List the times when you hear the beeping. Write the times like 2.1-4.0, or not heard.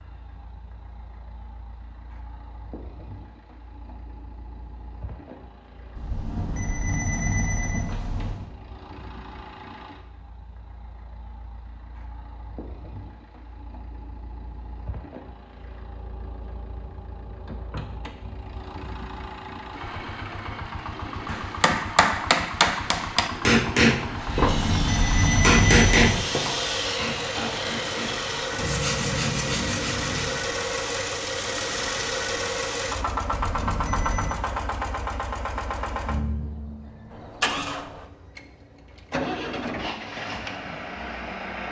6.0-8.5, 24.2-26.2, 33.2-34.4.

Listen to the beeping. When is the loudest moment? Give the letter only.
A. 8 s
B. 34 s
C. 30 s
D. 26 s
D.